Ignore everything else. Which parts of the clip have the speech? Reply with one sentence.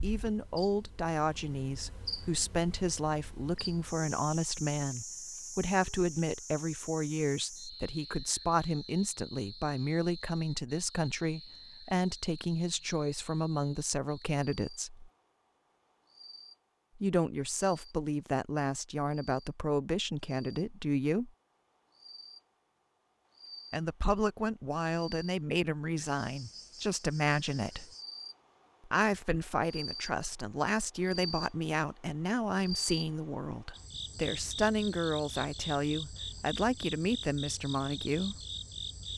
You can hear the speech from 0.0 to 15.1 s, from 16.9 to 21.3 s, from 23.7 to 27.9 s and from 28.9 to 38.4 s.